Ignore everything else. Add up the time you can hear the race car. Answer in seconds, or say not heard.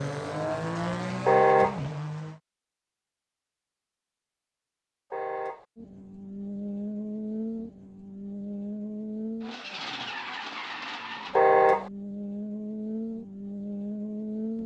11 s.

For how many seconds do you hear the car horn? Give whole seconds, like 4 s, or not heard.
2 s.